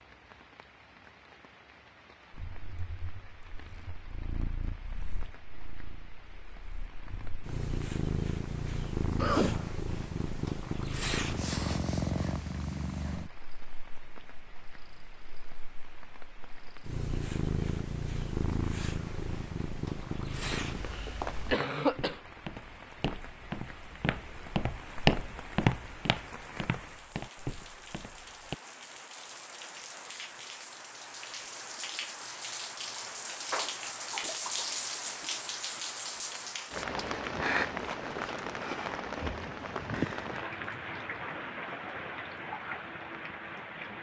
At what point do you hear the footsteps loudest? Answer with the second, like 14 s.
25 s.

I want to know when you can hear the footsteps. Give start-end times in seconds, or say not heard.
20.4-28.6.